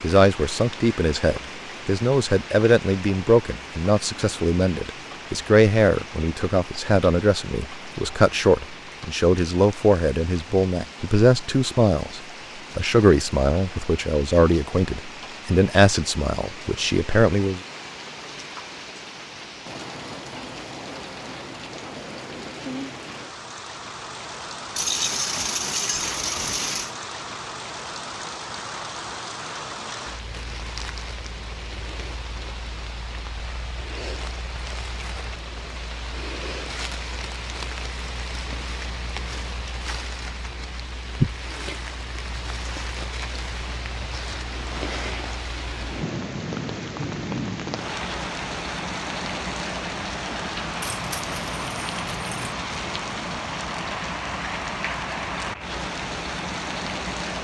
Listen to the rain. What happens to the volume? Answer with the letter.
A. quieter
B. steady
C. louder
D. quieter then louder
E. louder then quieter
C.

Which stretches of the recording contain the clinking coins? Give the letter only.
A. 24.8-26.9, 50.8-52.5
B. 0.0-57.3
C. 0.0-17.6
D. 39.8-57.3
A.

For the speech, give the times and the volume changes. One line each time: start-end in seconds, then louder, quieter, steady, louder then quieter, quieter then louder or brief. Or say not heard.
0.0-17.6 steady.